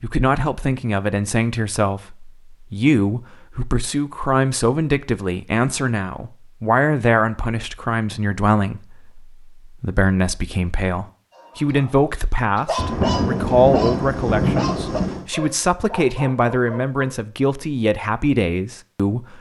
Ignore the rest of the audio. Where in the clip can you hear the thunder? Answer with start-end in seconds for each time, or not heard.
12.8-15.2.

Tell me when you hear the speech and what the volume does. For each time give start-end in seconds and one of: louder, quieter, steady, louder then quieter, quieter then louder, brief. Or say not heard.
0.0-19.3 steady.